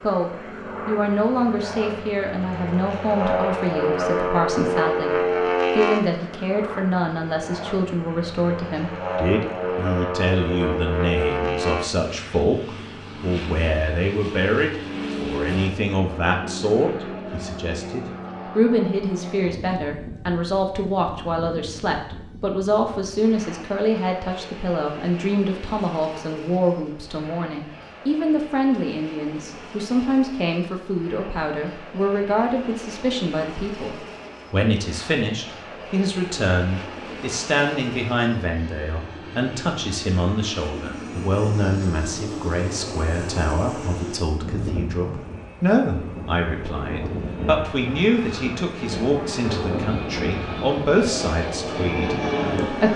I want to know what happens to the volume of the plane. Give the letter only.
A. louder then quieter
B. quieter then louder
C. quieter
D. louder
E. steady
B.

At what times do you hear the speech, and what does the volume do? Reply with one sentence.
The speech can be heard from 0.0 to 52.9 s, at a steady volume.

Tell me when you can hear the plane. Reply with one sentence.
The plane can be heard from 0.0 to 52.9 s.